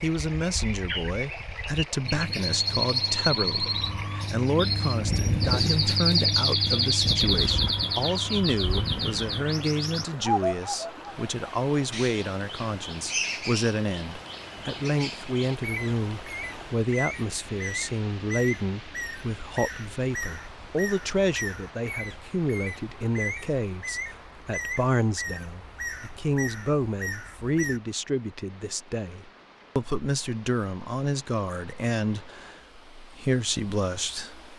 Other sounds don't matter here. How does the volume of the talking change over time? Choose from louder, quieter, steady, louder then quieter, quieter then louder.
steady.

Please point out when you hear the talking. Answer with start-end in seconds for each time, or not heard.
0.0-34.5.